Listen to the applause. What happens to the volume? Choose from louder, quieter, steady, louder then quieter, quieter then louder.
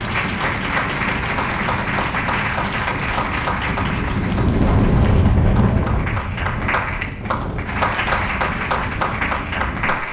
quieter then louder.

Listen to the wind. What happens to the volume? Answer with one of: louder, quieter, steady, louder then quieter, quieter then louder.
louder then quieter.